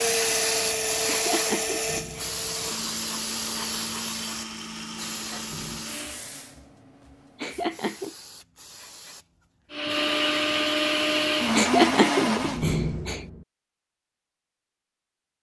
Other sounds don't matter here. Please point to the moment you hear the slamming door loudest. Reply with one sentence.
The volume of the slamming door peaks at 13 seconds.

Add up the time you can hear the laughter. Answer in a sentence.
The laughter can be heard for 4 seconds in total.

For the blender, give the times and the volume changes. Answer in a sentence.
The blender can be heard from 0.0 to 6.2 s, getting quieter; and briefly from 9.7 to 12.7 s.